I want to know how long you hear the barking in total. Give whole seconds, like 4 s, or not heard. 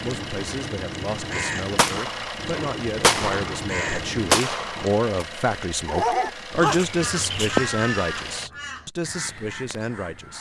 2 s.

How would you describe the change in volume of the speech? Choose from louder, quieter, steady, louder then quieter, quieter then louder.
louder then quieter.